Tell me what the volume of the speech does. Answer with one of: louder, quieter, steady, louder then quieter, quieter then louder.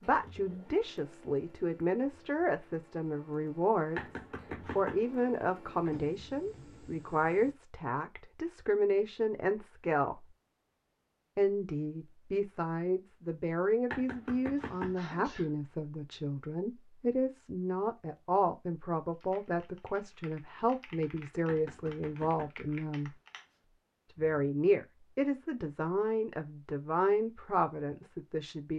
steady.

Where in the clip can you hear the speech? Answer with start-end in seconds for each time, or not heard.
0.0-10.2, 11.3-23.1, 24.1-28.7.